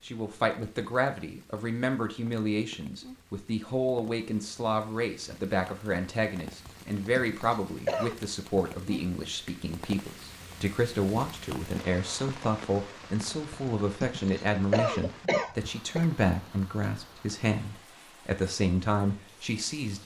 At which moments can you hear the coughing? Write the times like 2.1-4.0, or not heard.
6.7-8.2, 13.5-16.1.